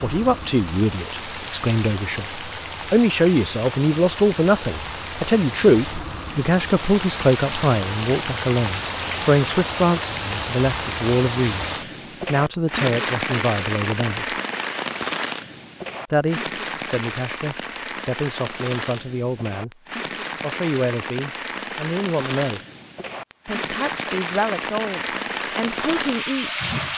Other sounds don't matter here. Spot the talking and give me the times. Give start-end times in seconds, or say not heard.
0.0-14.3, 16.1-19.8, 20.4-22.6, 23.4-26.9.